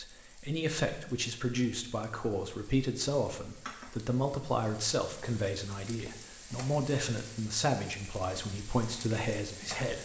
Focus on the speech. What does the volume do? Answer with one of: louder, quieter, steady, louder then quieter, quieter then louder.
steady.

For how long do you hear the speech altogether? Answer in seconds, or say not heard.
10 s.